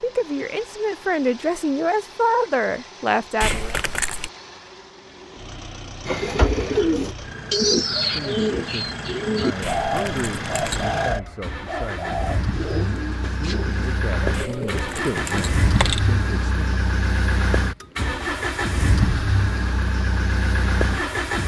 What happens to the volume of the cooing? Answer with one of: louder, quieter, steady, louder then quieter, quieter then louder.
quieter.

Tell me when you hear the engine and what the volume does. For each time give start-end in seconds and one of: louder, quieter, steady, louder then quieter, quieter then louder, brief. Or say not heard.
0.0-21.4 louder.